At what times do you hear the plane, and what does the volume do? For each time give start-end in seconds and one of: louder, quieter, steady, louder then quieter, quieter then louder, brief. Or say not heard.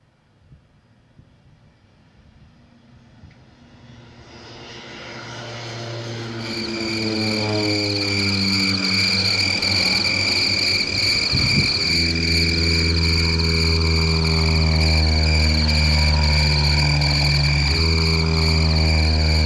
0.0-19.4 louder.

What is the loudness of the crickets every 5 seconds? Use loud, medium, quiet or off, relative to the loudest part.
off, loud, loud, loud.